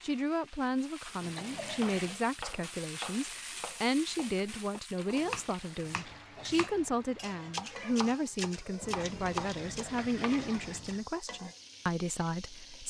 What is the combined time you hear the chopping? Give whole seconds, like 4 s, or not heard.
9 s.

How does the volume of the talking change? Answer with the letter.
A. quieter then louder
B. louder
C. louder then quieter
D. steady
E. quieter
D.